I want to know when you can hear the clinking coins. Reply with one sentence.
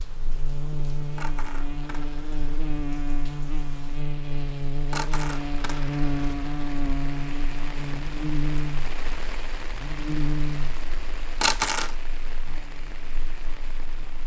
You can hear the clinking coins from 1.1 to 2.6 s, from 4.9 to 6.9 s and from 11.4 to 11.9 s.